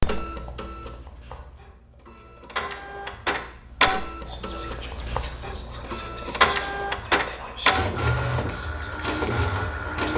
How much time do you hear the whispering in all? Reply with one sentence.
The whispering can be heard for 6 seconds in total.